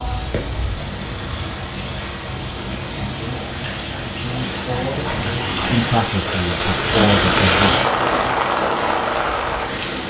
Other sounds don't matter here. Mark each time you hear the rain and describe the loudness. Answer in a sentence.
You can hear the rain from 0.0 to 10.0 s, getting louder.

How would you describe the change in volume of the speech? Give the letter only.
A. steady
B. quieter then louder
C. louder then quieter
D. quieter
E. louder
E.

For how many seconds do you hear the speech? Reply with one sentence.
The speech can be heard for 5 seconds in total.